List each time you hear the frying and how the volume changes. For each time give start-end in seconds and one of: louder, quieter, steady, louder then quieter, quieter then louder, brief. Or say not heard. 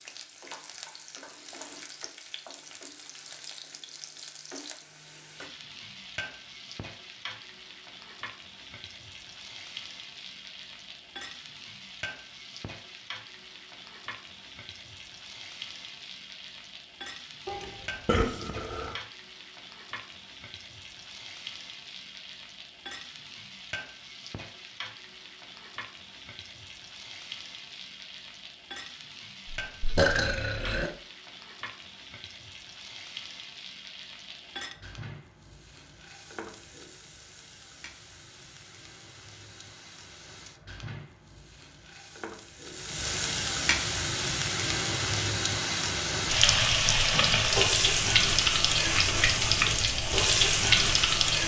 0.0-51.4 louder.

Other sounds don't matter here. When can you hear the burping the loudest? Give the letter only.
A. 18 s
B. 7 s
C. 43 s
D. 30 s
D.